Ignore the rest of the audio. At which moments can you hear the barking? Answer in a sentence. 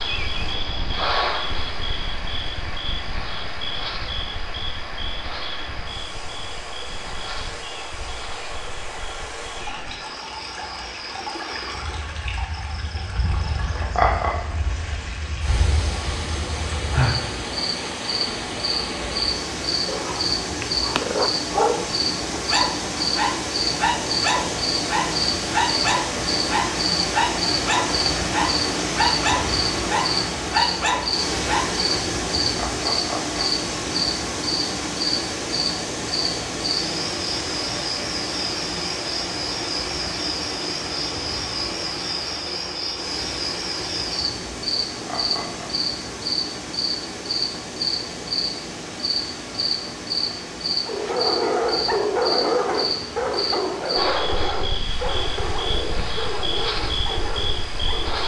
The barking can be heard from 19.9 to 31.8 s and from 50.9 to 58.2 s.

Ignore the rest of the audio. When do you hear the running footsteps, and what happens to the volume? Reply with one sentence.
The running footsteps can't be heard in this clip.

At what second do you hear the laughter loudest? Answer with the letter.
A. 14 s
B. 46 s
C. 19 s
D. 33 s
A.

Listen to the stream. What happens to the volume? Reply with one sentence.
The volume of the stream goes up, then down.